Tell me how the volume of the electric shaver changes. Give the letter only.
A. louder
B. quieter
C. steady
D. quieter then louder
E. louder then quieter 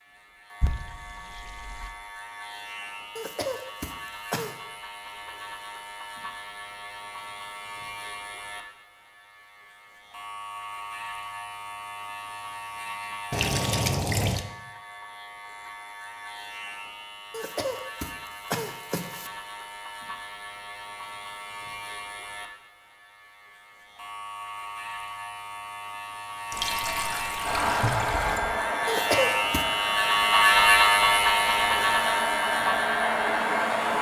A.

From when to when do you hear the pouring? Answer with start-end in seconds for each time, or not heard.
0.6-1.9, 13.3-14.4, 26.5-28.4.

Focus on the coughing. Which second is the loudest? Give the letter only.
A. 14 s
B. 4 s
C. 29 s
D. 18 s
C.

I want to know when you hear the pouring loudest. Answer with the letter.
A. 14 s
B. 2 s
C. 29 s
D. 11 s
A.